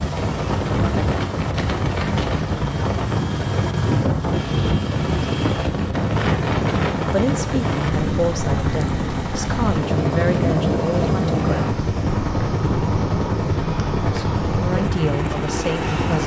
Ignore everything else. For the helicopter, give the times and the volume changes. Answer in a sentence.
You can hear the helicopter from 0.0 to 16.2 s, at a steady volume.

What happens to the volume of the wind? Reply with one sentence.
The volume of the wind stays about the same.